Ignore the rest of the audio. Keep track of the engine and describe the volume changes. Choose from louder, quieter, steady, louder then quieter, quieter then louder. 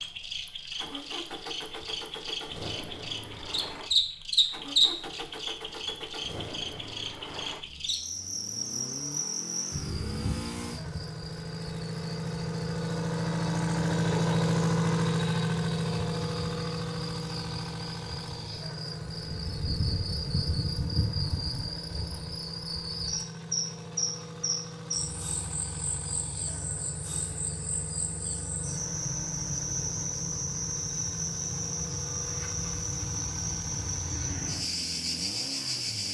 louder then quieter.